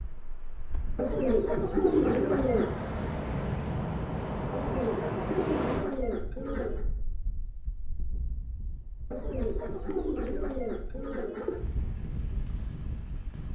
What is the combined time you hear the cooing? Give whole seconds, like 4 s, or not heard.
7 s.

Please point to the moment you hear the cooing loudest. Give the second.
2 s.